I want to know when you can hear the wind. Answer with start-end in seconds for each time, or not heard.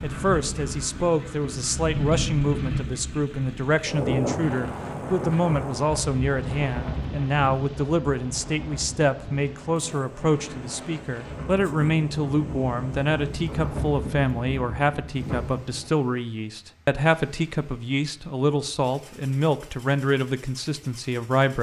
0.0-15.9.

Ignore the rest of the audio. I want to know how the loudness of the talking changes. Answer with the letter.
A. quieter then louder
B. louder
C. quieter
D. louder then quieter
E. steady
E.